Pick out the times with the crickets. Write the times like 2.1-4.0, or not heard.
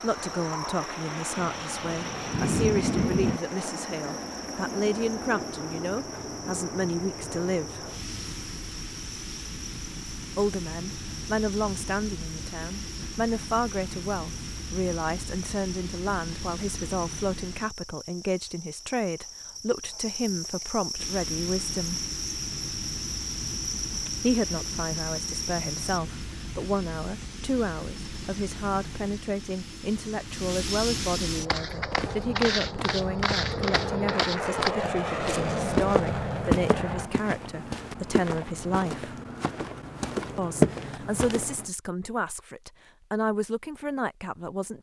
0.0-26.0.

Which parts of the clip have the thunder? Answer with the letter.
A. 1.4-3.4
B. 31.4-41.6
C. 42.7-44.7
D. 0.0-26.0
A.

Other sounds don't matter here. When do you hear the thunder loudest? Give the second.
3 s.